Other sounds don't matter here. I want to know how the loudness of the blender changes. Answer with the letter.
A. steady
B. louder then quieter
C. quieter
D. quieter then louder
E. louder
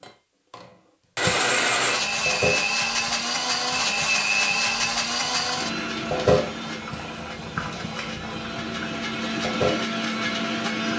D.